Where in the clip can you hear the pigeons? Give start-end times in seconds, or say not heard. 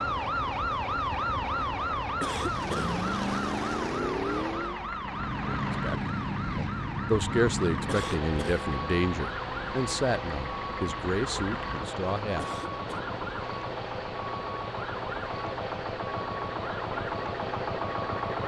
not heard.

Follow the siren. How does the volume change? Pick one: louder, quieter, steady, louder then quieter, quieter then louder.
quieter.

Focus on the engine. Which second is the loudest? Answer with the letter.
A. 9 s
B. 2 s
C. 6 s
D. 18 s
D.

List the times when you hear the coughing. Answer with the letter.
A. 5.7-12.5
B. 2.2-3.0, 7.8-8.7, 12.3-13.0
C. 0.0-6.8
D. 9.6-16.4
B.